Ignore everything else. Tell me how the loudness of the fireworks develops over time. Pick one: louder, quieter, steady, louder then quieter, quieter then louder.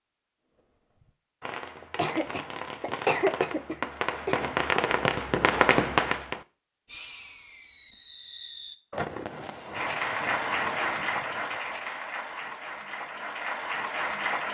louder then quieter.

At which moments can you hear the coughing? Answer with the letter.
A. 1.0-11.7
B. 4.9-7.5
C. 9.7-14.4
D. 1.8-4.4
D.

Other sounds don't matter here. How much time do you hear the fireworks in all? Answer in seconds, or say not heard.
11 s.